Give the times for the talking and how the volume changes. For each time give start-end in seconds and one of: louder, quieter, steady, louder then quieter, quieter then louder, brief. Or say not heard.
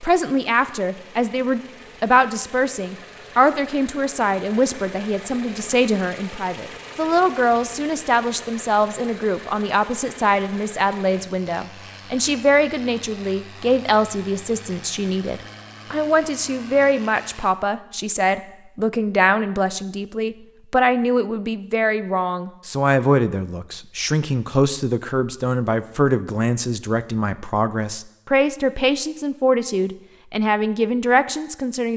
0.0-31.9 steady.